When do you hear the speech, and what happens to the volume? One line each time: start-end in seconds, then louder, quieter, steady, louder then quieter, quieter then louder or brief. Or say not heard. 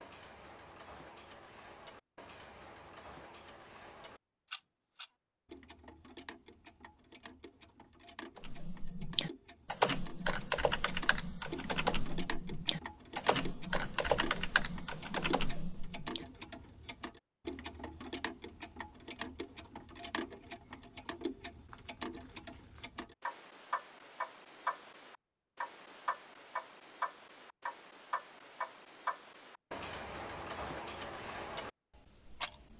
not heard.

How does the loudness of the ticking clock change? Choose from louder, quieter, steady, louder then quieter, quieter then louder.
louder.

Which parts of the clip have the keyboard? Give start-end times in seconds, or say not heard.
8.3-16.2.